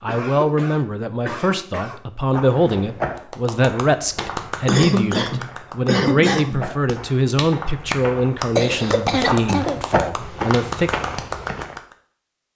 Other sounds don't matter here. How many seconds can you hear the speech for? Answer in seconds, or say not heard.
11 s.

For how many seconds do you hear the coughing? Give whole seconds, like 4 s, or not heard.
5 s.